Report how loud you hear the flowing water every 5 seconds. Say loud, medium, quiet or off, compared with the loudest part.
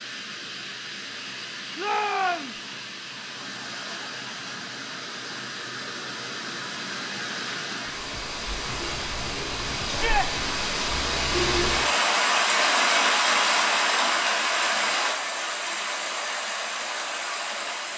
quiet, medium, loud, medium.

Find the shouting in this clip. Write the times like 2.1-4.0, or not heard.
1.8-2.6, 9.8-10.3.